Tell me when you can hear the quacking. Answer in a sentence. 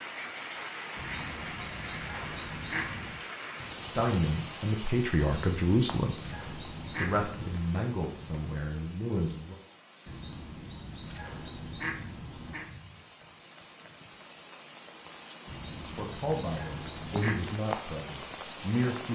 You can hear the quacking from 0.9 to 3.2 s, from 5.2 to 7.7 s, from 10.1 to 12.7 s and from 15.4 to 17.5 s.